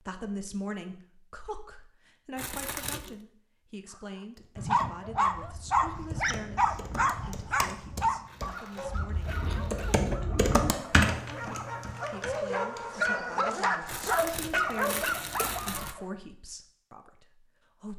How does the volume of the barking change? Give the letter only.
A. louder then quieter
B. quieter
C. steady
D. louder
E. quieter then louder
E.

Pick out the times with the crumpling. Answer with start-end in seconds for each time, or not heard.
2.4-3.1, 8.2-10.1, 13.8-15.9.